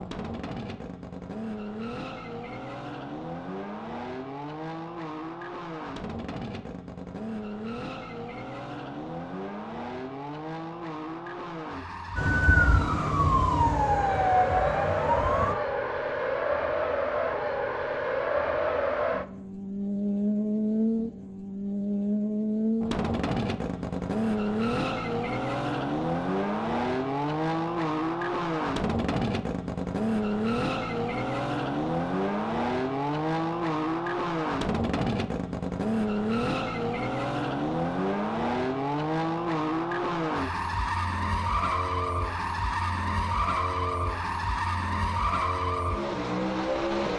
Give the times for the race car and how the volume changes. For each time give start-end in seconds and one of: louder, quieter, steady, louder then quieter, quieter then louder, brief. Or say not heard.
0.0-47.1 louder.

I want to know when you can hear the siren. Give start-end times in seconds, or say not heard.
12.2-15.6.